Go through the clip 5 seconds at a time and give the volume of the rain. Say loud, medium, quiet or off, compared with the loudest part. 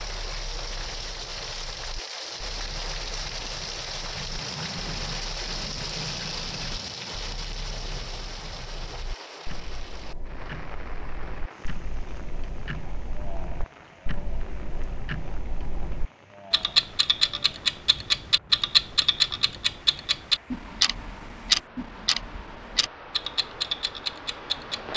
loud, loud, medium, quiet, medium.